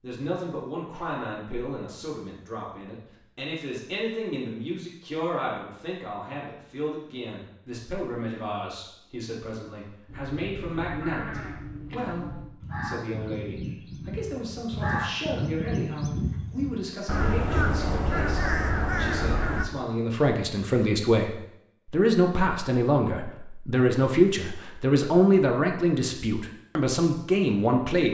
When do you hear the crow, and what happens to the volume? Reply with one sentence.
The crow can be heard from 10.1 to 19.6 s, getting louder.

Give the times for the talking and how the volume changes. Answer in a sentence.
You can hear the talking from 0.0 to 28.1 s, getting louder.